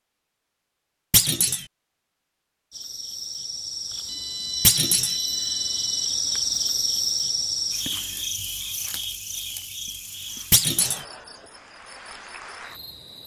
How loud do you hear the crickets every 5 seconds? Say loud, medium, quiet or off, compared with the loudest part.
medium, loud, quiet.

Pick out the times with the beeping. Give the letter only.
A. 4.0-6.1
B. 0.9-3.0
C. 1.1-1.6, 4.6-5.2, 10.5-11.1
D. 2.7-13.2
A.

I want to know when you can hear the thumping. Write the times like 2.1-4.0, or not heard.
1.1-1.6, 4.6-5.2, 10.5-11.1.